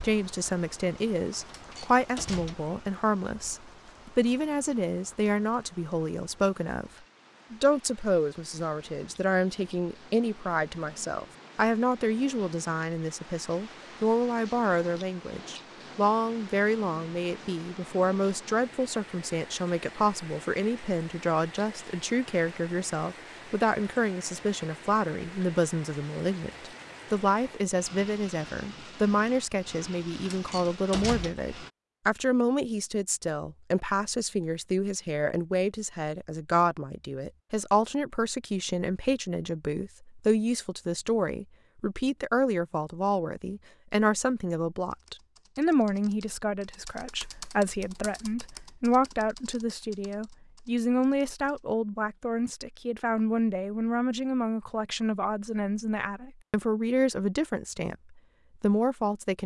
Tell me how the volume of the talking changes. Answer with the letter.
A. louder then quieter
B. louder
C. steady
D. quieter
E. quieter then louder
C.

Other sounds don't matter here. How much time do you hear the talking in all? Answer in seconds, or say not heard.
59 s.